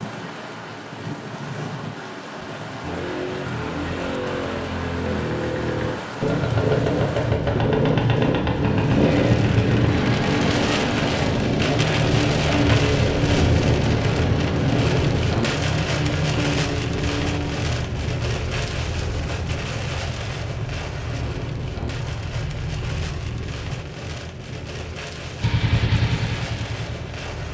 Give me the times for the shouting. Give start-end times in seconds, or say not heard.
not heard.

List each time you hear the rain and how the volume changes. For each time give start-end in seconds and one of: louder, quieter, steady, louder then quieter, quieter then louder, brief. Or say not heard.
0.0-27.4 louder then quieter.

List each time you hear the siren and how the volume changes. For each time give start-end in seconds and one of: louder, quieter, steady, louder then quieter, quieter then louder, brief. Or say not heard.
not heard.